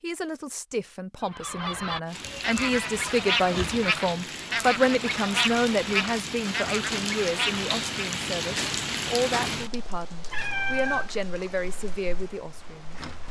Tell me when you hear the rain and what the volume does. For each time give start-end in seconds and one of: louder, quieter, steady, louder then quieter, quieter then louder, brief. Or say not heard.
2.0-13.2 louder then quieter.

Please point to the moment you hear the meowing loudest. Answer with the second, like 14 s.
11 s.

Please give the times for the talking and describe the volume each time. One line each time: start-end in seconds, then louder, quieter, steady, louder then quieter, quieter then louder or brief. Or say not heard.
0.0-12.9 louder then quieter.